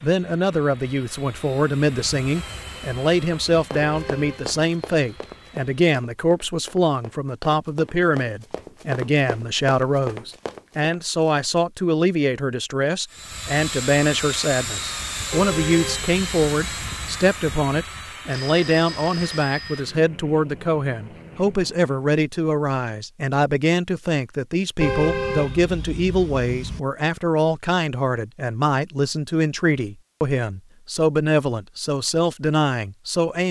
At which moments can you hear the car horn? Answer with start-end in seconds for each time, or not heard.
3.8-4.5, 15.3-17.2, 24.8-26.8.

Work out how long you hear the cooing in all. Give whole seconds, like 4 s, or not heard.
not heard.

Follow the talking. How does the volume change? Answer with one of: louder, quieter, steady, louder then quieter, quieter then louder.
steady.